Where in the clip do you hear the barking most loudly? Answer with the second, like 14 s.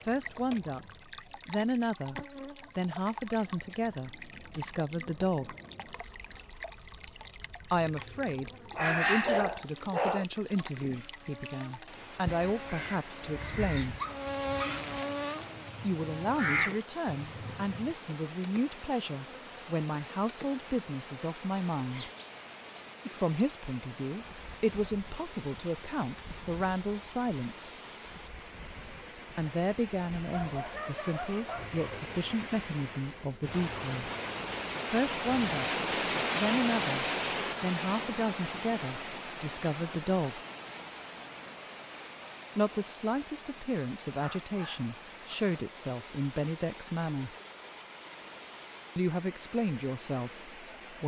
9 s.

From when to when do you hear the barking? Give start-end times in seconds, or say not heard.
8.7-10.2, 13.9-14.7, 30.3-32.0, 44.2-45.4.